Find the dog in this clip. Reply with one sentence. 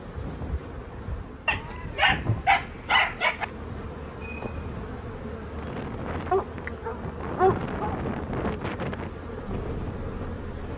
The dog can be heard from 1.4 to 3.5 s and from 6.3 to 8.0 s.